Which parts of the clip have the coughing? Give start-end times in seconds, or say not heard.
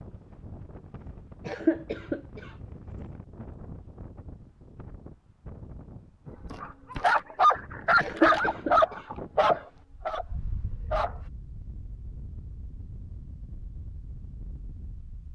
1.4-2.5, 8.0-9.6.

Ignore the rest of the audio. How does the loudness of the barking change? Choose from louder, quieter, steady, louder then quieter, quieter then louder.
quieter.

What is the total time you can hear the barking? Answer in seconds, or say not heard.
5 s.